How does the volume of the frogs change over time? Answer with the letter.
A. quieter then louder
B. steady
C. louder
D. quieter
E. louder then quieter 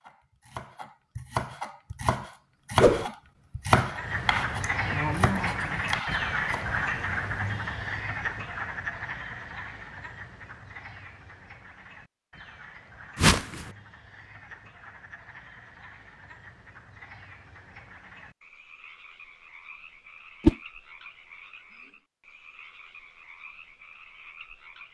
D.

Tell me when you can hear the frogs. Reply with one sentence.
You can hear the frogs from 3.9 to 24.8 s.